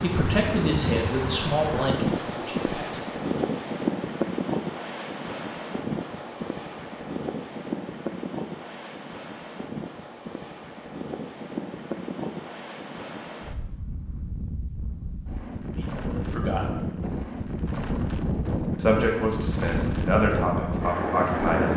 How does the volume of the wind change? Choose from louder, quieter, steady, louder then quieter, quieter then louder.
quieter then louder.